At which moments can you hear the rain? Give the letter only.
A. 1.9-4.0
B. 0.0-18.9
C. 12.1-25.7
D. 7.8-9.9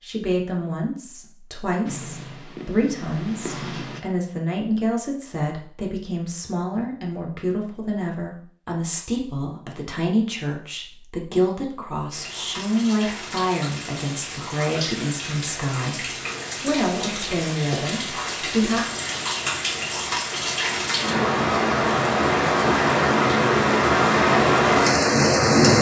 C.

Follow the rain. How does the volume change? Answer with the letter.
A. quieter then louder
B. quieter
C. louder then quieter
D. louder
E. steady
D.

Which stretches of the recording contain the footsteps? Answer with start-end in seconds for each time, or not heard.
not heard.